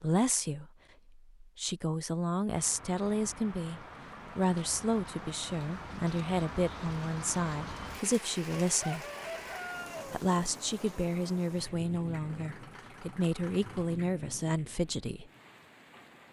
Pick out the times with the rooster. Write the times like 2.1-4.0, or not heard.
8.7-10.2.